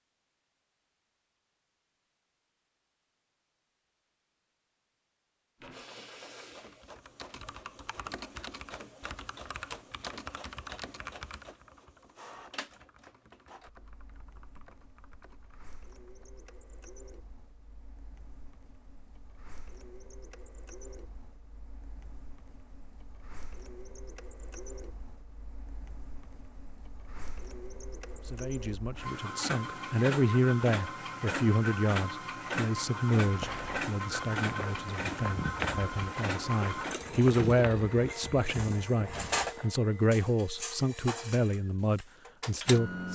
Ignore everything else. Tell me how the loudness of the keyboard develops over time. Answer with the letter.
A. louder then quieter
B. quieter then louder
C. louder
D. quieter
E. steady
D.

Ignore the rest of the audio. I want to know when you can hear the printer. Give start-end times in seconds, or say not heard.
5.6-43.1.